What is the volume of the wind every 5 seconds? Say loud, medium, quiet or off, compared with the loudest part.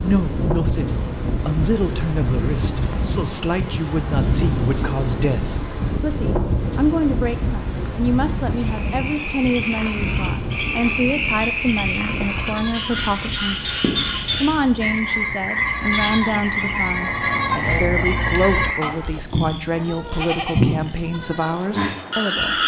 loud, loud, medium, quiet, quiet.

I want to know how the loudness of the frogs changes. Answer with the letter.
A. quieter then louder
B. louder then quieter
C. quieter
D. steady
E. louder
D.